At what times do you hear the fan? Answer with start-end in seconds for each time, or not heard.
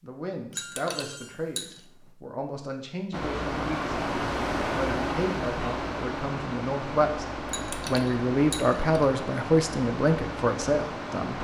3.1-11.3.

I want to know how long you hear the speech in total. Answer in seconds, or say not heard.
10 s.